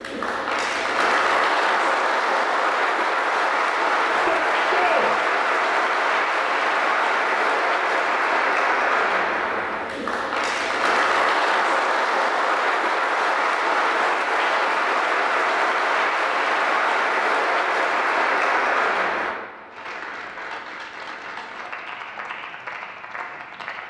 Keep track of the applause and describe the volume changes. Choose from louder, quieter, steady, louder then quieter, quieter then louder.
quieter.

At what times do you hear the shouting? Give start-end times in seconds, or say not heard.
4.1-5.1.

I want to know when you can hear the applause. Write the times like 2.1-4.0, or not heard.
0.0-23.8.